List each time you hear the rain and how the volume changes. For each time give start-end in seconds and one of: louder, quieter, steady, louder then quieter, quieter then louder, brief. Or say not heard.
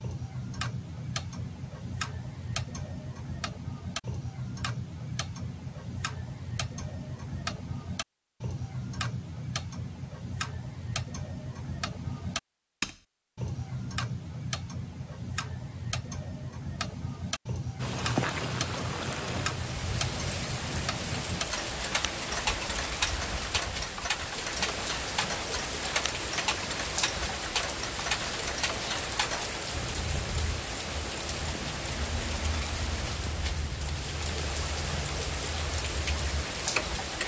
17.8-37.2 steady.